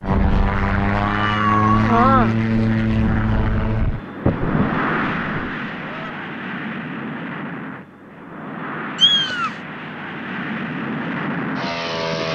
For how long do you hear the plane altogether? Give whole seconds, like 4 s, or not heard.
12 s.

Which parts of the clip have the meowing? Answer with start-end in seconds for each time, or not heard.
1.0-2.4, 4.2-6.1, 8.9-9.6.